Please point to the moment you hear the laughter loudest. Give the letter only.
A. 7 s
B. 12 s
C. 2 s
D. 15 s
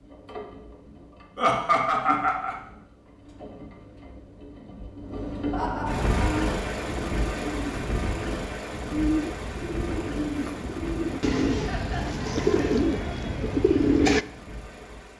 C.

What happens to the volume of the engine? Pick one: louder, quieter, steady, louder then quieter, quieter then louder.
louder then quieter.